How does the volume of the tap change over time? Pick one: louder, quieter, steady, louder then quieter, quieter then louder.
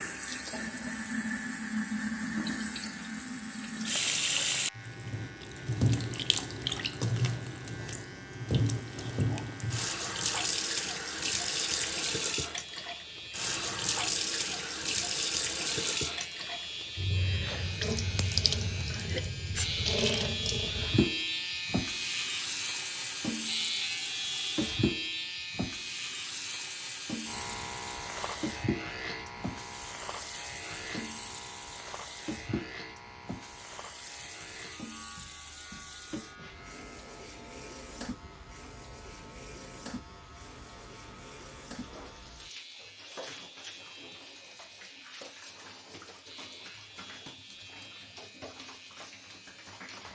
quieter.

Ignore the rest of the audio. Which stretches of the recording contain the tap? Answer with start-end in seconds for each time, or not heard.
0.0-50.1.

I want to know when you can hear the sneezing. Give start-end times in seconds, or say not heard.
18.9-19.8.